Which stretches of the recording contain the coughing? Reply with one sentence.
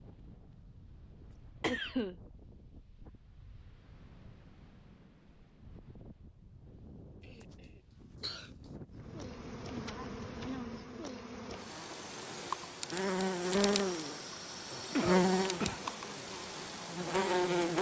The coughing can be heard from 1.2 to 2.1 s, from 7.2 to 8.6 s and from 14.3 to 15.9 s.